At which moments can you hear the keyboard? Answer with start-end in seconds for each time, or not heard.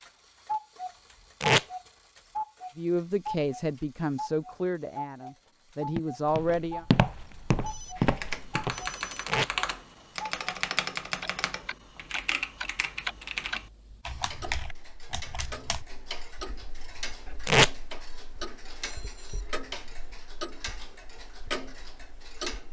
8.0-15.8.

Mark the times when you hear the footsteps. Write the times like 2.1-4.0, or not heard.
6.0-8.9.